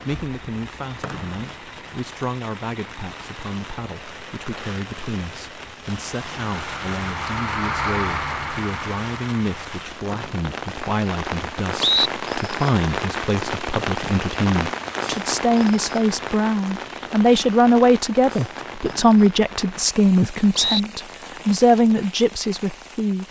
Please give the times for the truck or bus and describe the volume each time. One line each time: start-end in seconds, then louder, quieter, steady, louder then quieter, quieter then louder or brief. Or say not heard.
0.0-9.8 louder.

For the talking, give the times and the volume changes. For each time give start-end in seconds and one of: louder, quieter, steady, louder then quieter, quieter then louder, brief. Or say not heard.
0.0-23.2 louder.